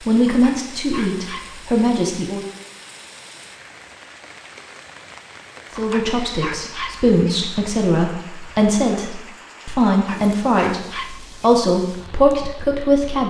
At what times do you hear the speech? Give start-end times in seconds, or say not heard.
0.1-2.5, 5.8-13.2.